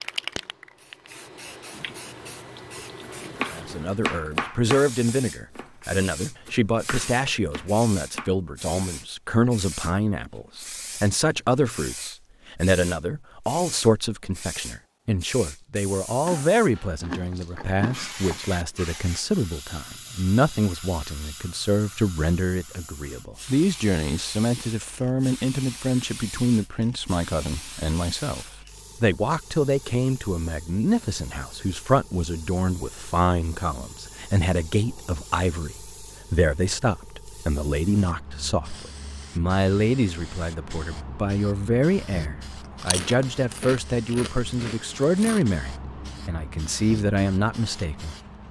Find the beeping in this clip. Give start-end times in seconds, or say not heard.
not heard.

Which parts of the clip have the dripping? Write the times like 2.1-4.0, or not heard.
not heard.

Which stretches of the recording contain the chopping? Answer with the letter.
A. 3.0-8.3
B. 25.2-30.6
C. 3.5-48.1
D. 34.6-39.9
A.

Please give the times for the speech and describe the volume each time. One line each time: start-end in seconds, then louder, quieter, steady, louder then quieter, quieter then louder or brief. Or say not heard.
3.5-48.1 steady.